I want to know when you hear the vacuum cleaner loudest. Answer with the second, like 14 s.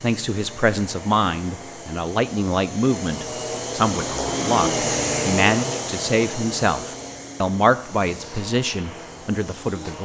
5 s.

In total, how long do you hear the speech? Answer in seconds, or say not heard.
10 s.